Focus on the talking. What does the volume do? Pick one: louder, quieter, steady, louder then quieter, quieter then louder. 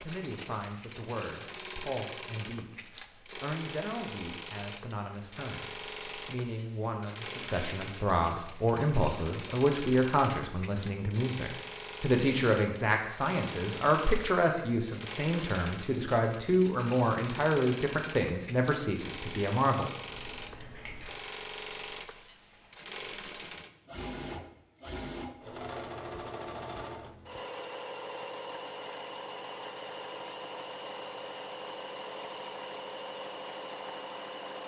louder.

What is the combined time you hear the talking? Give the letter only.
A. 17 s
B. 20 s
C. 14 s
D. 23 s
B.